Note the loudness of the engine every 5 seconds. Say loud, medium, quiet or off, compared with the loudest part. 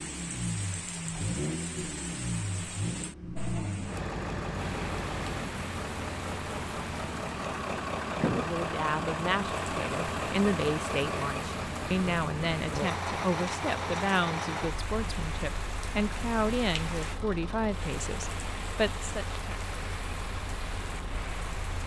loud, loud, loud, medium, medium.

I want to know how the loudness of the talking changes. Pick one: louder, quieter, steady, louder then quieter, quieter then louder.
steady.